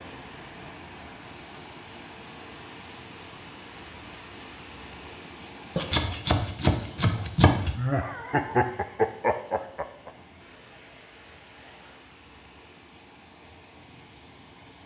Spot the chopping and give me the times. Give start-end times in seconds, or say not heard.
5.8-7.8.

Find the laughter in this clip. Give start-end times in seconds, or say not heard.
7.7-10.1.